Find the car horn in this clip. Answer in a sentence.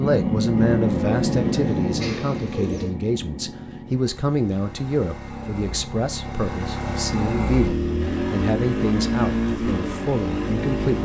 The car horn can't be heard in this clip.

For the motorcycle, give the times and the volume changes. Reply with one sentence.
The motorcycle can be heard from 0.0 to 10.9 s, getting quieter then louder.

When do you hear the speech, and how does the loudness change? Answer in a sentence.
The speech can be heard from 0.0 to 10.9 s, at a steady volume.